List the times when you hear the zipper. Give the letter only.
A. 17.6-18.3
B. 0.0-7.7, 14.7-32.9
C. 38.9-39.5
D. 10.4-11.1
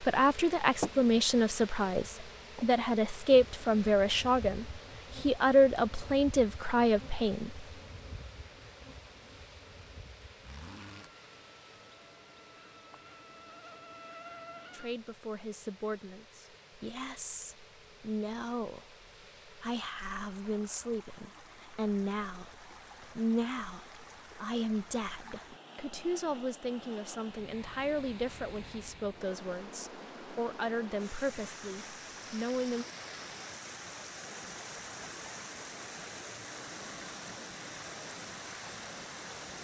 D.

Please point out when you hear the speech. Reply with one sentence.
You can hear the speech from 0.0 to 7.7 s and from 14.7 to 32.9 s.